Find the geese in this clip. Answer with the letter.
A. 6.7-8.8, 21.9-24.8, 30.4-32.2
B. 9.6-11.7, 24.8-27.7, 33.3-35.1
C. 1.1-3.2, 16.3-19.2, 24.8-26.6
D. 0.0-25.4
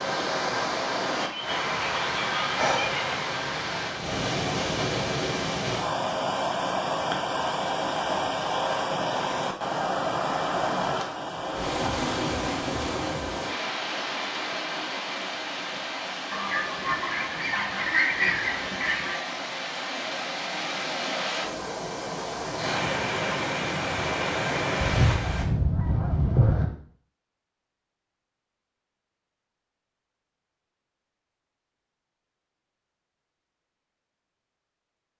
C.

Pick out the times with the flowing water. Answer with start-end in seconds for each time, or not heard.
0.0-25.4.